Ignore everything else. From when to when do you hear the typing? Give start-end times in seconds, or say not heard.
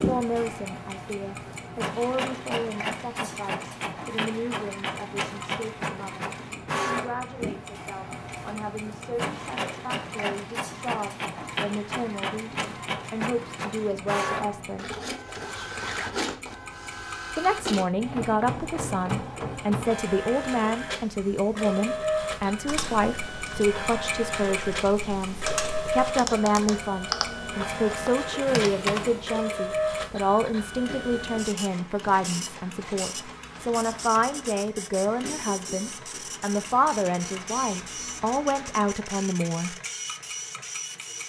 22.4-29.3.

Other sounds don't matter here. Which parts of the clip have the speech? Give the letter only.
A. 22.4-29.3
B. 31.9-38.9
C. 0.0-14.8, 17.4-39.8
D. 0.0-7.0
C.